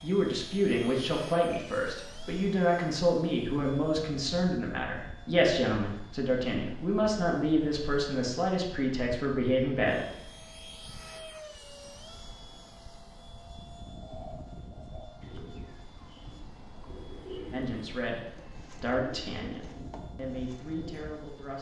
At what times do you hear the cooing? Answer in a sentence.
The cooing can be heard from 13.8 to 21.4 s.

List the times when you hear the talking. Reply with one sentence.
The talking can be heard from 0.0 to 10.1 s and from 17.5 to 21.5 s.